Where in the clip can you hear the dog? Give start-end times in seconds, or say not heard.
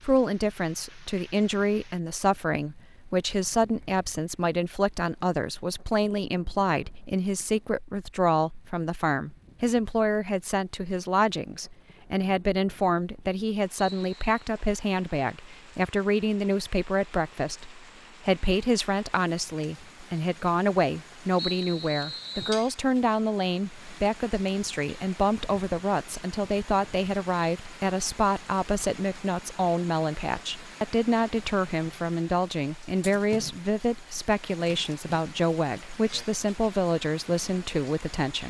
not heard.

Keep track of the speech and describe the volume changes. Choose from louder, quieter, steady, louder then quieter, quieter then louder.
steady.